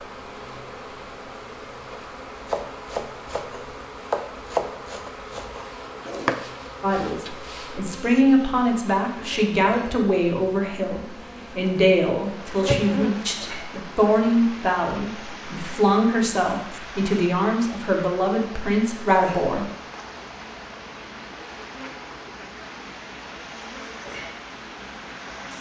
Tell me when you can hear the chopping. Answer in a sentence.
You can hear the chopping from 2.5 to 6.5 s.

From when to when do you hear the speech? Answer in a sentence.
You can hear the speech from 6.8 to 19.6 s.